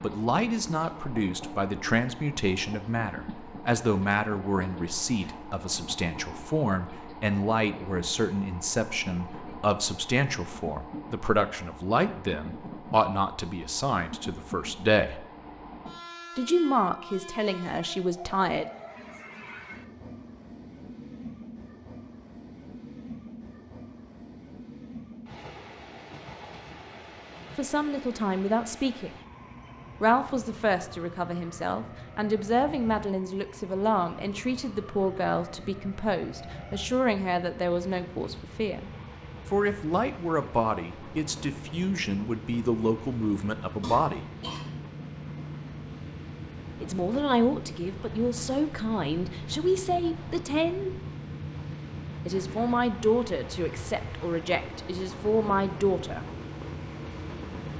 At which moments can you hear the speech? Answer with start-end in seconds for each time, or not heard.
0.0-15.2, 16.4-18.6, 27.6-29.1, 30.0-44.2, 46.8-51.0, 52.2-56.2.